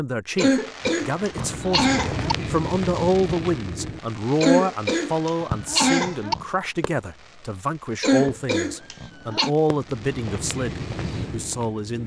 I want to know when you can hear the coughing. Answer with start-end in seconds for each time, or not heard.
0.3-2.4, 4.4-6.3, 8.0-9.5.